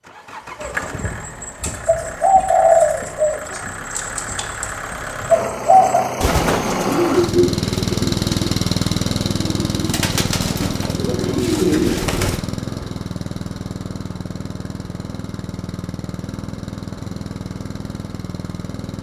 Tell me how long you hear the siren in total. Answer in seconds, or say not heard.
not heard.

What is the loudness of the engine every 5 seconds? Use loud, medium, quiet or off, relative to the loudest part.
medium, loud, medium, medium.